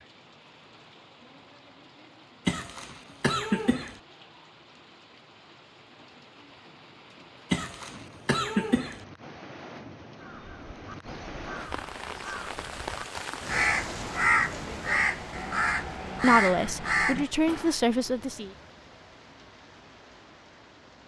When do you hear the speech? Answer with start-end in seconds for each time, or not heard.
16.2-18.5.